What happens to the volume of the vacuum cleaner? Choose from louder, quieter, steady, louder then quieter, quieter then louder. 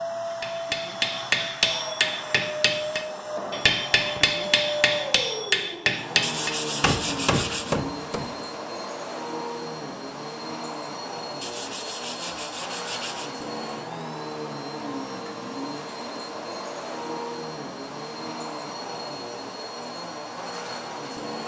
steady.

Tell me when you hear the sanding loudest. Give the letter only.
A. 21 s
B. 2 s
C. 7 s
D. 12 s
C.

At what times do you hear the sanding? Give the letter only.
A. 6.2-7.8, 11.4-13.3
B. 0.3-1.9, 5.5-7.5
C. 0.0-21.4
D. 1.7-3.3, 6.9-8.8
A.